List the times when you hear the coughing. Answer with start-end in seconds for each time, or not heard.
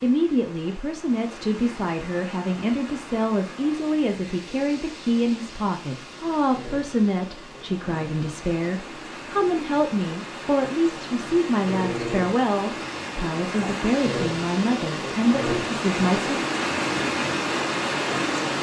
not heard.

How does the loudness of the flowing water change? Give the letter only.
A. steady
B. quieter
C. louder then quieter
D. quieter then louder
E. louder
E.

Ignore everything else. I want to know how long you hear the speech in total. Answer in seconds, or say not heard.
16 s.